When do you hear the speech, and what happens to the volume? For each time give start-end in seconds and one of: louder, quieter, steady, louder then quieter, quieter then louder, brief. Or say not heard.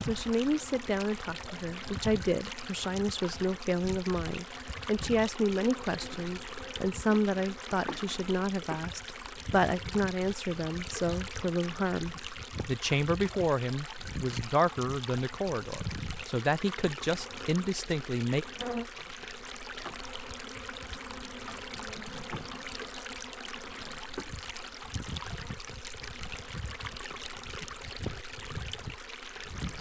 0.0-18.4 steady.